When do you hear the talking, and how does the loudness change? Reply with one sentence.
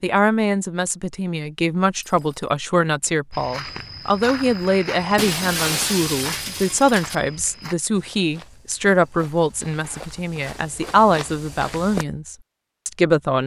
The talking can be heard from 0.0 to 13.4 s, at a steady volume.